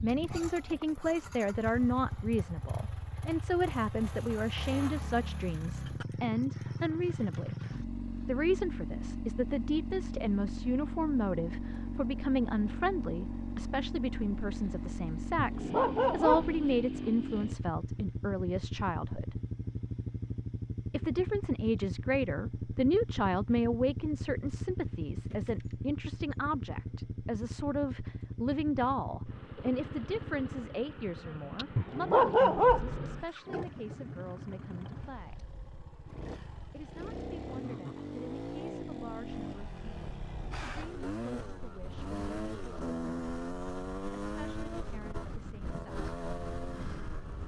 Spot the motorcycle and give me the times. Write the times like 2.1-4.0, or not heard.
0.0-47.4.